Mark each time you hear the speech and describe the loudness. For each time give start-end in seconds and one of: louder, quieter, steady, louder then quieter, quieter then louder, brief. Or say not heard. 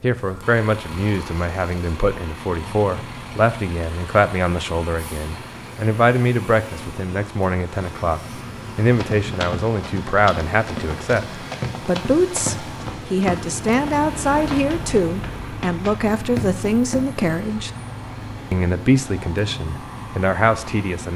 0.0-17.7 steady
18.5-21.1 brief.